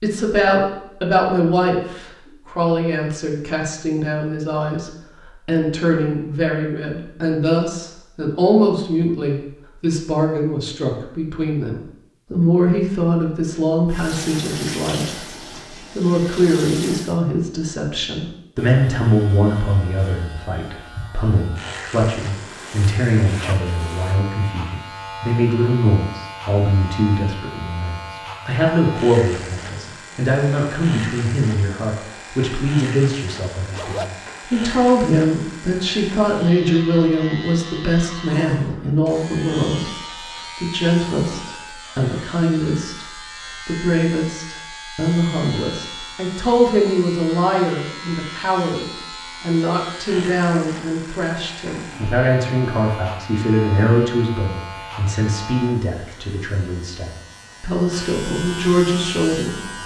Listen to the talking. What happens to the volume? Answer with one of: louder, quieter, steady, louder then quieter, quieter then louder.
steady.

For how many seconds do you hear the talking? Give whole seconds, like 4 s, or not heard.
60 s.